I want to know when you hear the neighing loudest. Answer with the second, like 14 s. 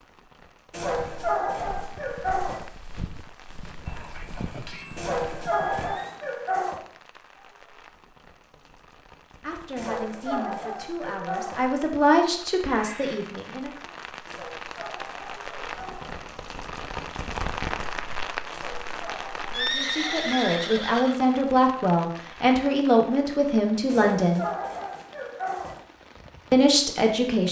20 s.